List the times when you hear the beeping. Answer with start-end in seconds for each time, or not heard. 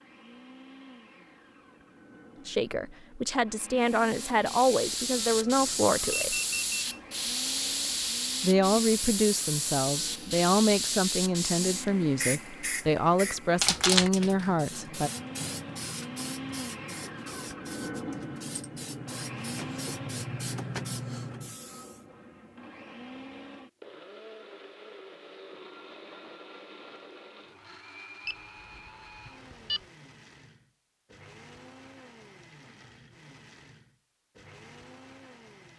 6.1-7.0, 28.2-29.8.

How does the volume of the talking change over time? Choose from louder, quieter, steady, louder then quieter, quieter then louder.
steady.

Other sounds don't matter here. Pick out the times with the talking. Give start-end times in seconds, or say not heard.
2.5-6.3, 8.4-15.1.